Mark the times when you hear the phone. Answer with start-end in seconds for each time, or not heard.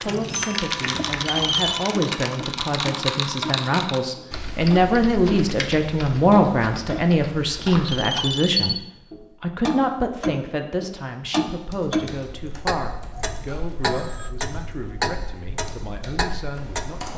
1.1-1.9, 7.8-8.8, 13.4-14.3.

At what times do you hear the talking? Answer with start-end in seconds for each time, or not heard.
0.0-17.1.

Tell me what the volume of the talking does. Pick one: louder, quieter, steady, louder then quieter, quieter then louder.
louder then quieter.